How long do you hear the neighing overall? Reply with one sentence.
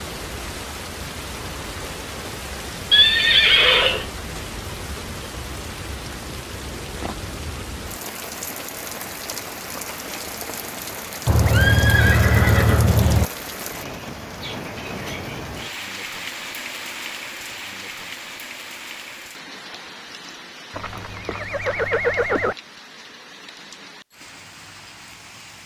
The neighing can be heard for 5 seconds in total.